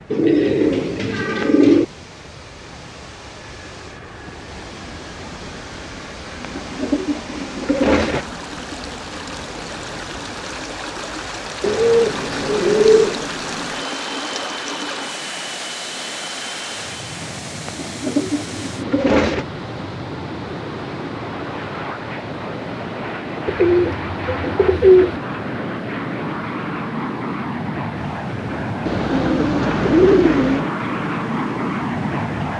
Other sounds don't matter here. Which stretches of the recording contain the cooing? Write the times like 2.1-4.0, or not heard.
0.1-1.9, 6.4-8.2, 11.6-13.2, 17.6-19.4, 23.4-25.2, 28.9-30.6.